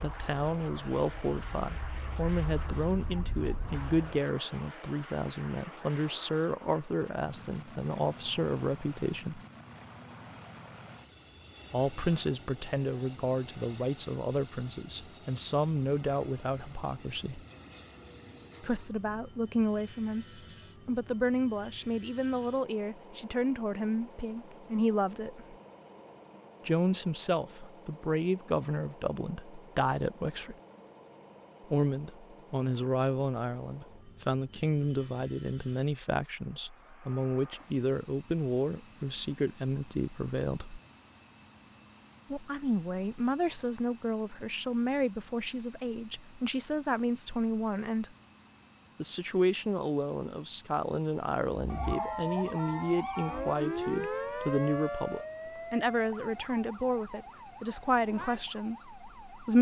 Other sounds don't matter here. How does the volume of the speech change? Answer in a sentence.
The loudness of the speech stays about the same.